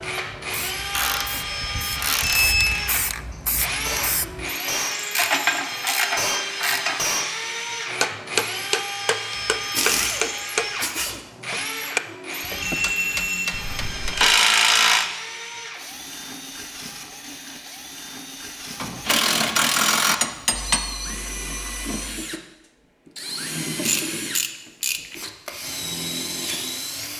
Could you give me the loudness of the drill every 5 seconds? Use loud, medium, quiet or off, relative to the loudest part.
loud, loud, loud, medium, loud, loud.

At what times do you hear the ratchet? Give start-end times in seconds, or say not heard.
0.9-2.8, 5.2-7.0, 9.3-11.2, 13.5-15.1, 18.8-20.8, 23.8-25.1.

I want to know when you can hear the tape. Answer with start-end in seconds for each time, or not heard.
not heard.